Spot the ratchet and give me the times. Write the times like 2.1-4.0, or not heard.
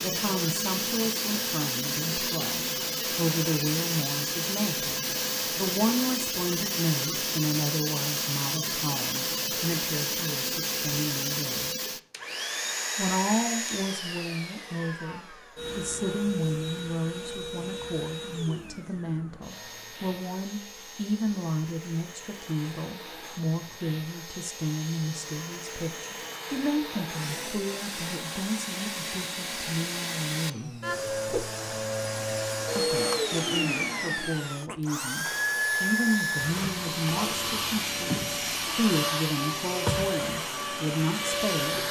not heard.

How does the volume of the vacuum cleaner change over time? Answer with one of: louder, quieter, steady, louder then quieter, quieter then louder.
quieter then louder.